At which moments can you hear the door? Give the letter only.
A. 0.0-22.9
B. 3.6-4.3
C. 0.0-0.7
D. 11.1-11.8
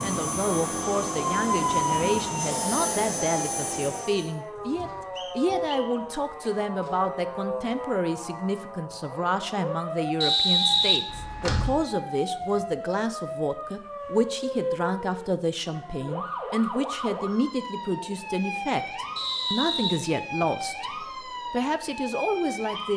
D.